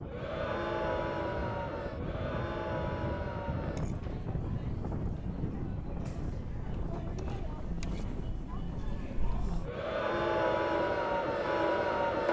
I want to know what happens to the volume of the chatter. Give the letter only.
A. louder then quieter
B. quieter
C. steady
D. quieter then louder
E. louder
D.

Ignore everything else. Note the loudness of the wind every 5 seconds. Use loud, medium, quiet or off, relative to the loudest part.
loud, loud, medium.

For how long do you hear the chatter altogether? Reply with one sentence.
The chatter can be heard for 12 seconds in total.